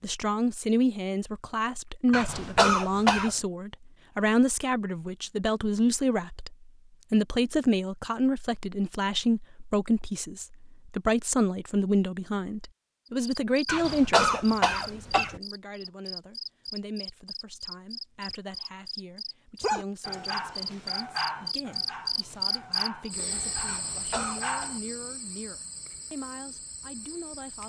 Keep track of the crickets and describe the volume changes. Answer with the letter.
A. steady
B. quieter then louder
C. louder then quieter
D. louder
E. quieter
C.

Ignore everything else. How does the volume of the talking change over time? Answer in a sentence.
The loudness of the talking goes down.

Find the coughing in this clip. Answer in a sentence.
You can hear the coughing from 2.1 to 3.4 s, from 13.7 to 15.4 s and from 23.6 to 24.7 s.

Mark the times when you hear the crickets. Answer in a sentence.
You can hear the crickets from 13.1 to 27.6 s.